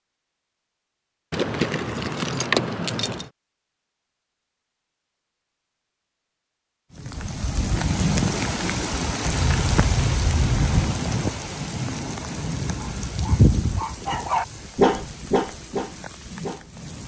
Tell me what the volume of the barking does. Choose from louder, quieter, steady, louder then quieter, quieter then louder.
louder then quieter.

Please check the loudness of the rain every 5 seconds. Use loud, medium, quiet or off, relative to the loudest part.
off, loud, loud, quiet.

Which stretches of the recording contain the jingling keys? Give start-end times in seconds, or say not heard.
1.3-3.2, 9.2-10.8.